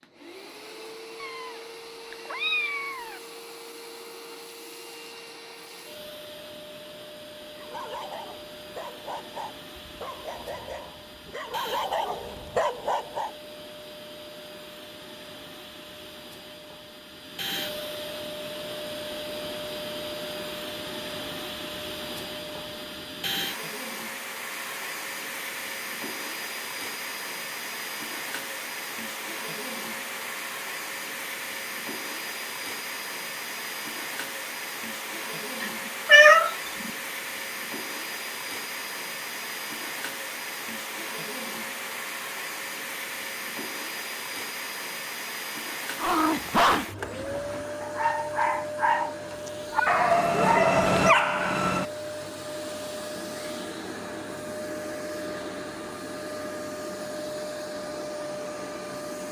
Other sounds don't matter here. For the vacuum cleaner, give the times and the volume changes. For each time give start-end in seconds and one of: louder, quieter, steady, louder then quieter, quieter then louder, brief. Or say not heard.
0.0-59.2 louder.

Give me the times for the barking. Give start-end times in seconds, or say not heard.
7.5-13.3, 46.0-51.9.